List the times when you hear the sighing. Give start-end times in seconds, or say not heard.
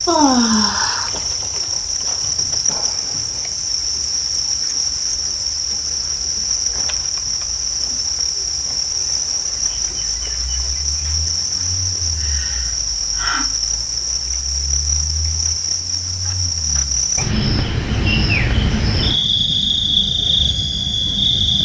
0.1-1.1, 12.2-13.4.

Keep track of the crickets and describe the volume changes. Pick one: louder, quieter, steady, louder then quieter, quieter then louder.
steady.